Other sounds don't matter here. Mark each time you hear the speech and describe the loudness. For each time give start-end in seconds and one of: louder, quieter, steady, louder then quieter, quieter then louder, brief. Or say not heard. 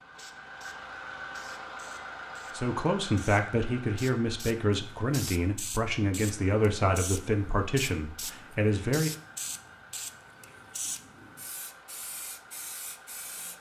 2.5-9.1 steady.